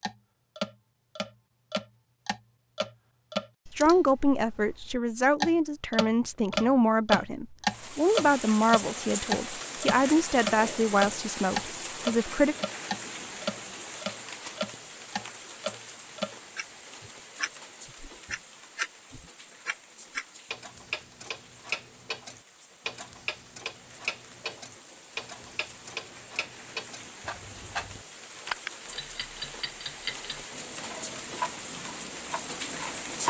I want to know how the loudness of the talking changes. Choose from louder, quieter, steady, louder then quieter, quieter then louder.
steady.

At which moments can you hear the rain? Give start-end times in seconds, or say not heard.
7.7-33.2.